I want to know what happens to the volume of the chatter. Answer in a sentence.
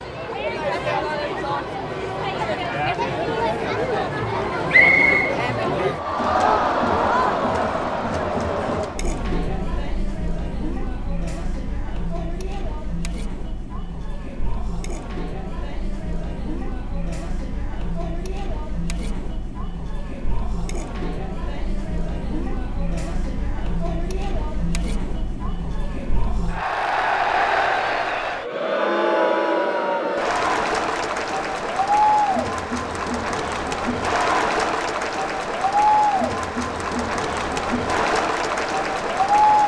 The loudness of the chatter goes down, then up.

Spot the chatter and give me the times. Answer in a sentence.
You can hear the chatter from 0.0 to 39.6 s.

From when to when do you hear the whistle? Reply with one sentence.
You can hear the whistle from 4.7 to 5.3 s.